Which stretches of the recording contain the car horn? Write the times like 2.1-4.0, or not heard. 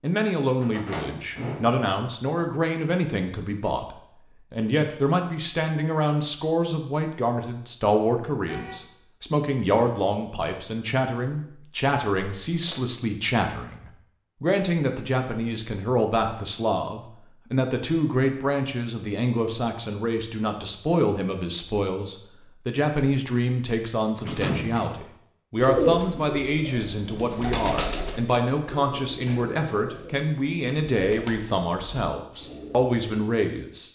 8.4-8.9.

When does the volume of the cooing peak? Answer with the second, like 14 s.
26 s.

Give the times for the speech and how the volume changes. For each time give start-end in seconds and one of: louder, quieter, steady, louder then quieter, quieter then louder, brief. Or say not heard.
0.0-33.9 steady.